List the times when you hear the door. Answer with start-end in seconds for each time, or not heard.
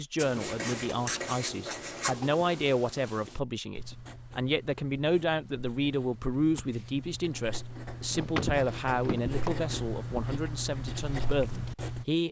8.1-9.7.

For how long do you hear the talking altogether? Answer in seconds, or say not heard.
12 s.